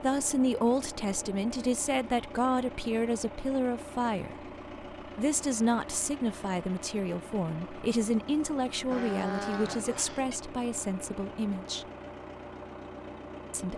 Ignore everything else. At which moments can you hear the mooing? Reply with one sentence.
The mooing can be heard from 8.9 to 10.4 s.